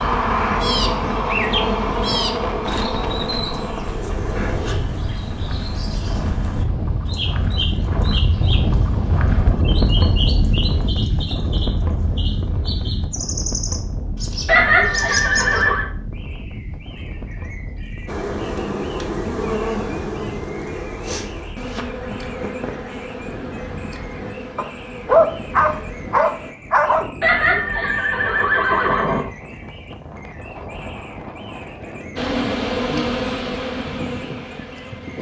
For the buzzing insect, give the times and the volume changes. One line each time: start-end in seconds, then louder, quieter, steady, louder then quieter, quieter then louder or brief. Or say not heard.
0.0-4.8 quieter
18.1-26.6 quieter
32.1-35.1 brief.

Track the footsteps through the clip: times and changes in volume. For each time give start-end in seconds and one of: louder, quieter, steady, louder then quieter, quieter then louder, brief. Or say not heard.
not heard.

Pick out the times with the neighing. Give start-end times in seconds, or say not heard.
14.4-15.8, 27.2-29.2.